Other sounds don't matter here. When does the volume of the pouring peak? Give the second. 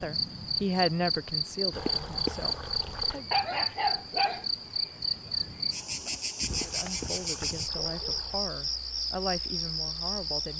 2 s.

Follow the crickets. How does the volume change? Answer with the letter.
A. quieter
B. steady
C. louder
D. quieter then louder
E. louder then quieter
B.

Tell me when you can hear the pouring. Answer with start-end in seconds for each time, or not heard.
1.7-3.2, 6.5-8.4.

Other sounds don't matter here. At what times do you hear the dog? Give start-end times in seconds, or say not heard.
3.3-4.5.